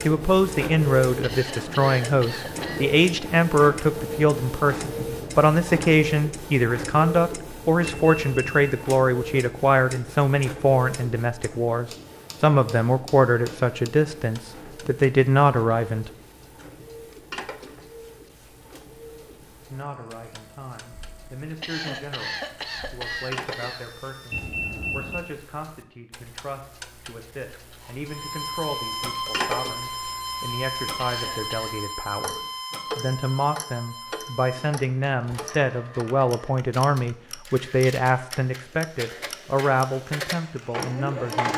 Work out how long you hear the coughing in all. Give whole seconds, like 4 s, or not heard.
5 s.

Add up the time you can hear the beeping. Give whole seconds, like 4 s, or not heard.
2 s.